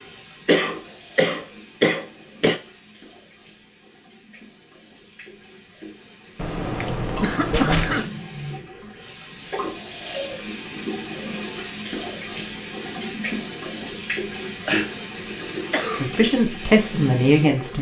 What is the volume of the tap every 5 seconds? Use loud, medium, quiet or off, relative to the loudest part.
quiet, medium, loud, loud.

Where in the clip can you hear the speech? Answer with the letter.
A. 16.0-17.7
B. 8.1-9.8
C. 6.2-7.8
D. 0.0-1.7
A.